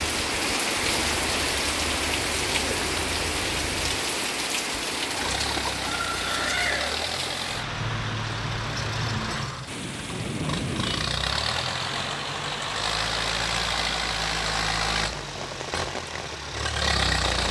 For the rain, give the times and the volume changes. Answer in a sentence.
The rain can be heard from 0.0 to 17.4 s, getting quieter.